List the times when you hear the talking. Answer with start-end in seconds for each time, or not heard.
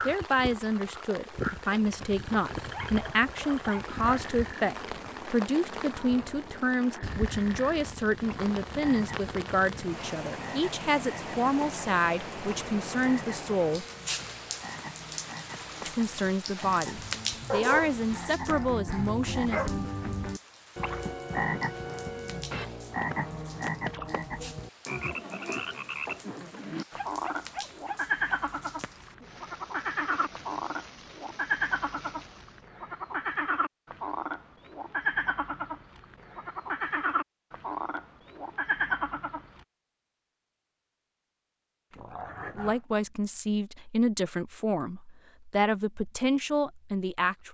0.1-13.8, 15.8-19.6, 42.5-47.4.